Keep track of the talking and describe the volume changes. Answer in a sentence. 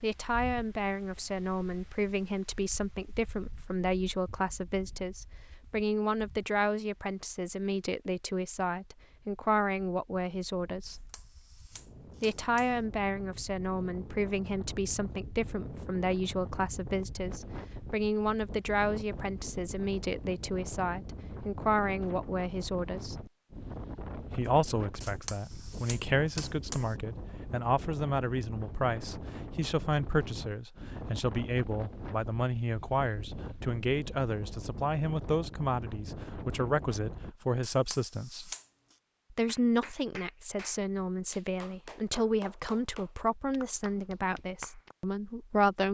The volume of the talking stays about the same.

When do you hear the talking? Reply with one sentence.
You can hear the talking from 0.0 to 11.1 s, from 12.2 to 23.2 s, from 24.2 to 38.5 s and from 39.3 to 45.8 s.